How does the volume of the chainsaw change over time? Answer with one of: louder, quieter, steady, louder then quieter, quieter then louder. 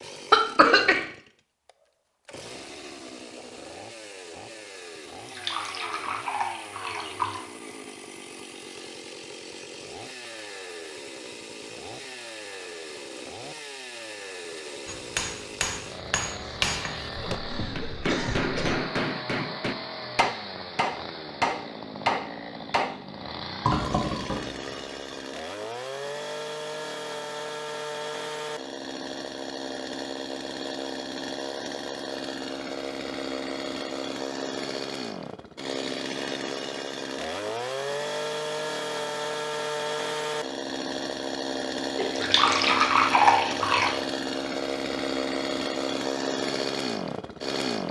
louder.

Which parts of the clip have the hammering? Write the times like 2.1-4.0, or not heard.
14.8-23.0.